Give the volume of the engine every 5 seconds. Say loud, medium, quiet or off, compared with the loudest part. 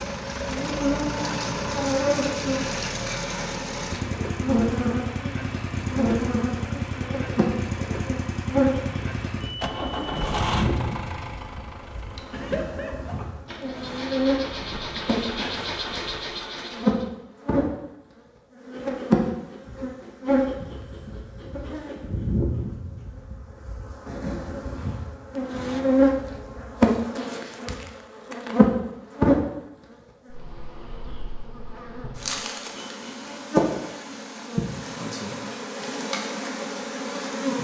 loud, loud, loud, loud, off, off, off, off.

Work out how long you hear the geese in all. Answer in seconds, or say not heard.
not heard.